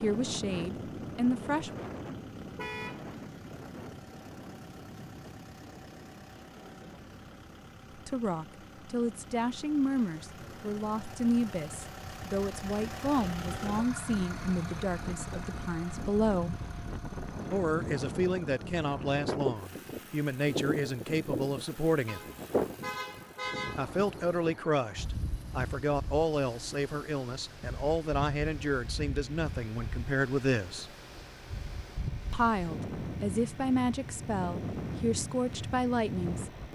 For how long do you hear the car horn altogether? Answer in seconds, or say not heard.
2 s.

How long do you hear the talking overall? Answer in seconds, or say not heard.
26 s.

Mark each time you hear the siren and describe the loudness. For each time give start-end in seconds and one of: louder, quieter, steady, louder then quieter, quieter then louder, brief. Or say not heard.
not heard.